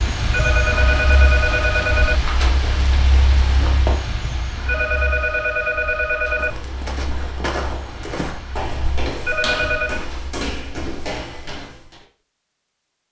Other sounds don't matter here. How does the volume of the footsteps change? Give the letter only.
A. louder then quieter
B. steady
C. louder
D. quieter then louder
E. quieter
B.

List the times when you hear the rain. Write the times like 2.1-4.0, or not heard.
0.0-10.3.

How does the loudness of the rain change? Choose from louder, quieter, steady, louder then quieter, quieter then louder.
quieter.